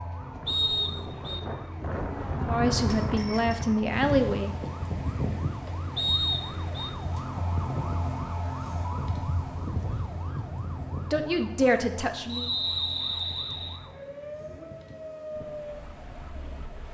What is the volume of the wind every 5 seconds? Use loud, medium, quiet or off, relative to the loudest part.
loud, loud, medium, quiet.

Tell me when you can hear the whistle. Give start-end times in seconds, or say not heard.
0.5-1.4, 6.0-6.9, 12.2-13.8.